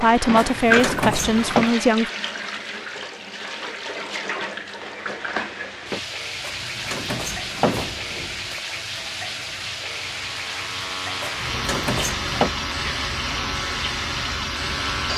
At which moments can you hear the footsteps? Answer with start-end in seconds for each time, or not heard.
not heard.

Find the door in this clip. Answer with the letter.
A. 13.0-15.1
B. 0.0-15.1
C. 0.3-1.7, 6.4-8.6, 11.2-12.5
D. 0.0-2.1
C.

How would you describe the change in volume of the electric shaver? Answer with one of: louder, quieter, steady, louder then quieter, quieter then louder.
steady.